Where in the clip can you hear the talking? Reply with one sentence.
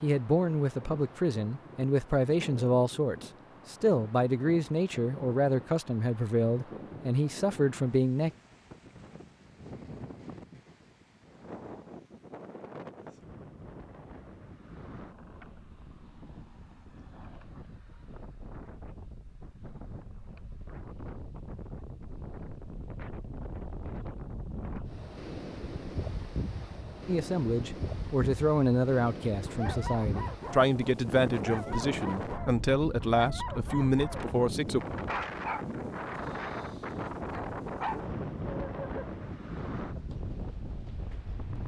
You can hear the talking from 0.0 to 8.3 s and from 27.1 to 34.9 s.